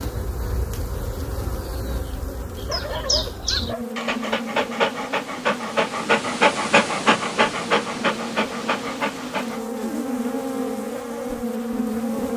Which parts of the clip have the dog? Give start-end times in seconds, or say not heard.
2.5-9.7.